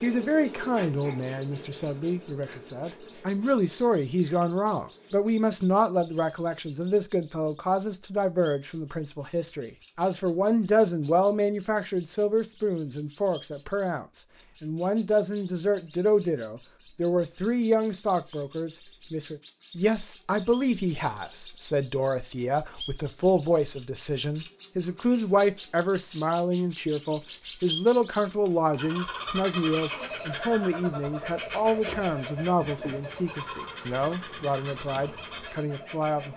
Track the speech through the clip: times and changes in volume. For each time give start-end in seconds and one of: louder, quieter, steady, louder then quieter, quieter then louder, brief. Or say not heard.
0.0-36.3 steady.